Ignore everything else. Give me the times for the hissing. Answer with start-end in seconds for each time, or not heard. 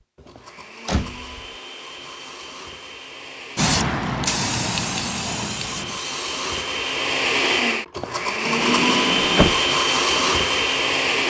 3.5-6.5.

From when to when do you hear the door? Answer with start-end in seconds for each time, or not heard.
0.2-1.4, 8.4-9.6.